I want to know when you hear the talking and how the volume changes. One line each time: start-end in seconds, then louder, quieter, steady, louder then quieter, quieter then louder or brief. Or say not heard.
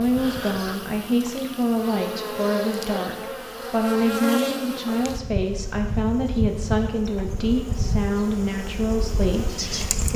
0.0-10.1 steady.